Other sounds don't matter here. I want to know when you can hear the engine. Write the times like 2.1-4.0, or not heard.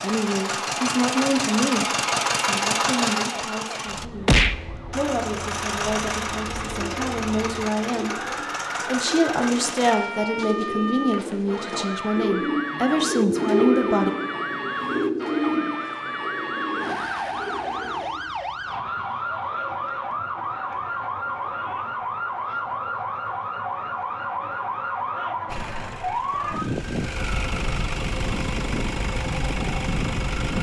0.0-10.0, 25.4-30.5.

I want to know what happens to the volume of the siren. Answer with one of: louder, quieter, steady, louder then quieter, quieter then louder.
louder.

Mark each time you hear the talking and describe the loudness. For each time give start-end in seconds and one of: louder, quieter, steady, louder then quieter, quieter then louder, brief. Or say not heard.
0.0-14.1 quieter then louder.